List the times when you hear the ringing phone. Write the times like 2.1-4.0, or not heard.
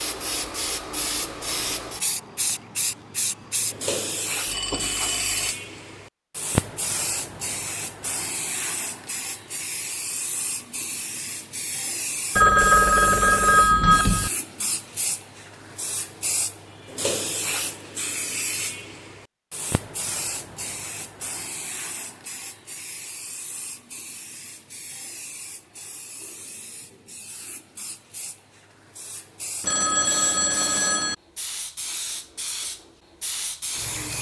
4.5-5.5, 12.3-14.3, 29.6-31.1.